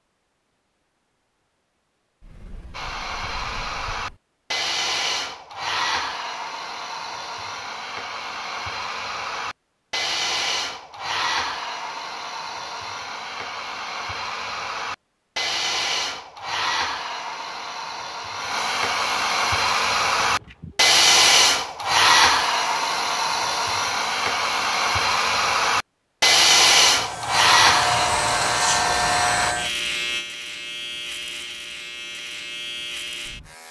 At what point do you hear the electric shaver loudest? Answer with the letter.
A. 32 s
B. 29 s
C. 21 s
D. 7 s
B.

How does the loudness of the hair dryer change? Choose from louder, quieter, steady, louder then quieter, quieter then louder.
louder.